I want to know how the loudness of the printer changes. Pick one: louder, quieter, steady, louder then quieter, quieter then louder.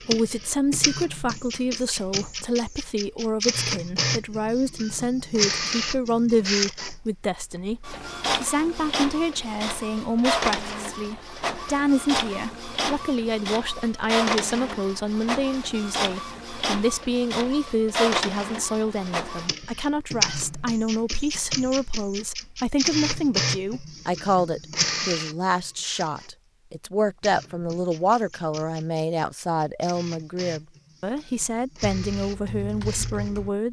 quieter.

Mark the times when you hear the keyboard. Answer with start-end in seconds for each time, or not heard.
31.8-33.5.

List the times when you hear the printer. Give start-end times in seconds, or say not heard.
0.0-33.5.